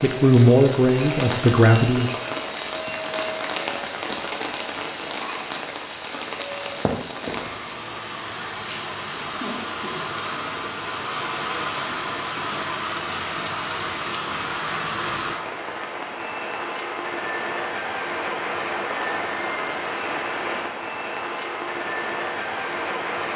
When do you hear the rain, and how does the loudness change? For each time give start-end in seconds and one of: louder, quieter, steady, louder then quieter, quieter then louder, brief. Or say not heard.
0.0-23.3 steady.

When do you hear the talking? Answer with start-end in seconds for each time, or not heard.
0.0-2.1.